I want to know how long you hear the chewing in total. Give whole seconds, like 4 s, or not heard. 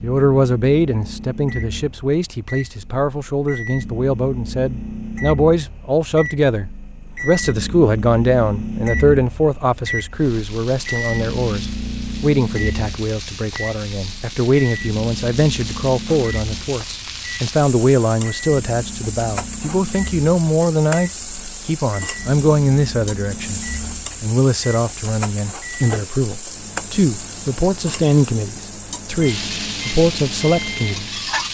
not heard.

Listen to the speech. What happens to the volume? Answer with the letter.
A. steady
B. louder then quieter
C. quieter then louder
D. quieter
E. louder
A.